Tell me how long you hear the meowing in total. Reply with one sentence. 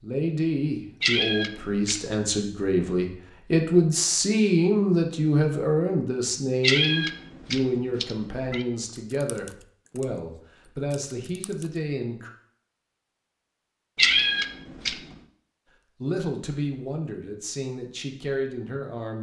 You can hear the meowing for 4 seconds altogether.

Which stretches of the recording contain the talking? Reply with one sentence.
You can hear the talking from 0.0 to 12.3 s and from 16.0 to 19.1 s.